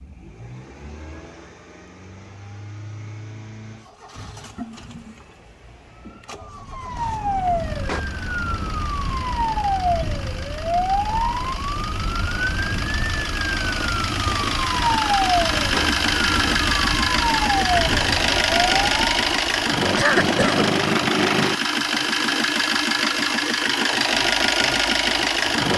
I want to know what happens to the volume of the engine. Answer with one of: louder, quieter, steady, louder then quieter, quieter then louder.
louder.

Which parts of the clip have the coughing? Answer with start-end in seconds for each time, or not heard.
19.9-20.6.